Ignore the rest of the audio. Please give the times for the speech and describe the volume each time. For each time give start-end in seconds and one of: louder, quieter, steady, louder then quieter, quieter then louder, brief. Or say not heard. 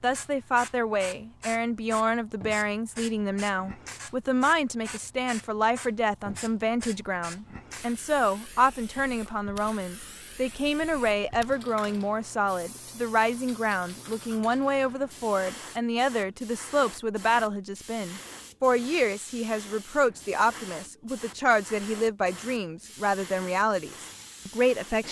0.0-25.0 steady.